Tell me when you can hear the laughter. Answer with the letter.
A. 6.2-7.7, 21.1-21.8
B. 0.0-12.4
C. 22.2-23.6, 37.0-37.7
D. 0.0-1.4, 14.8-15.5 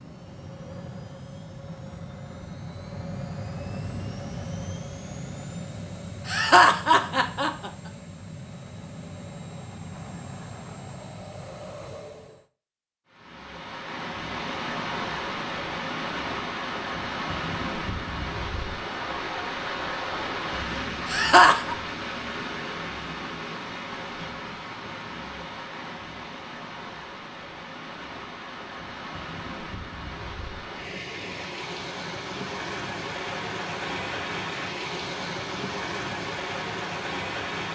A.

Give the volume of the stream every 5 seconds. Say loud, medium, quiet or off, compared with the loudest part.
off, off, loud, loud, loud, medium, loud, loud.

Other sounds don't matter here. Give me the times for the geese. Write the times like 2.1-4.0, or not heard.
not heard.